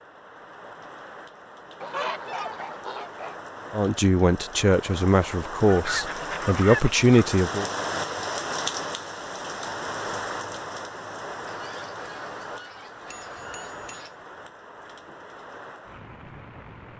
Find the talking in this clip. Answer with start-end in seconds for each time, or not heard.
3.7-7.7.